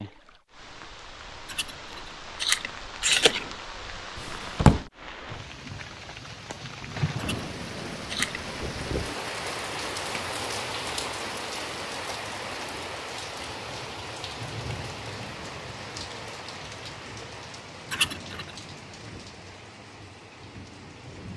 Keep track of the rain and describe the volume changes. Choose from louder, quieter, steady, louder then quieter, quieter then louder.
louder then quieter.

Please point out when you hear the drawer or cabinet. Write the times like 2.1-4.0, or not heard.
4.2-4.8.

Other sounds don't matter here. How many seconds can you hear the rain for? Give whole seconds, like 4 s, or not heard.
21 s.